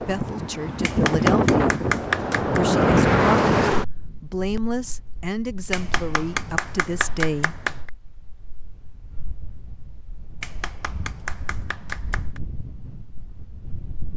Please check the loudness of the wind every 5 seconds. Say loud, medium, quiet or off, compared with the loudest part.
loud, quiet, quiet.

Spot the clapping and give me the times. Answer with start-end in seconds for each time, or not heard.
0.8-2.6, 5.7-7.9, 10.4-12.4.